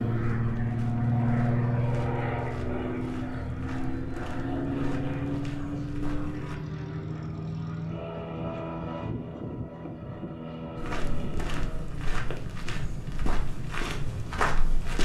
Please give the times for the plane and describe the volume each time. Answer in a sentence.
The plane can be heard from 0.0 to 15.0 s, getting quieter.